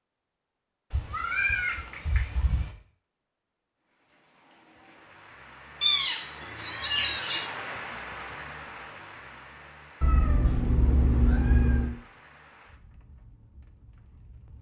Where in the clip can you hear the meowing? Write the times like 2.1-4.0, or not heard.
0.9-2.7, 5.8-7.5, 10.0-11.9.